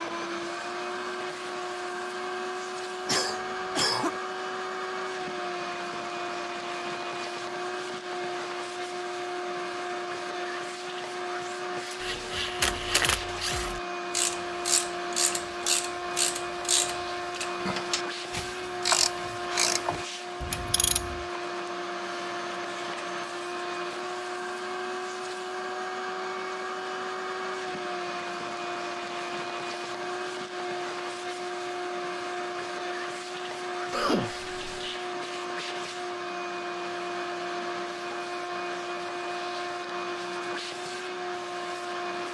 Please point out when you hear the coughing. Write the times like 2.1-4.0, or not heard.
3.0-4.2, 33.9-34.8.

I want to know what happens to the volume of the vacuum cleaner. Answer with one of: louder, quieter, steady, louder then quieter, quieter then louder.
steady.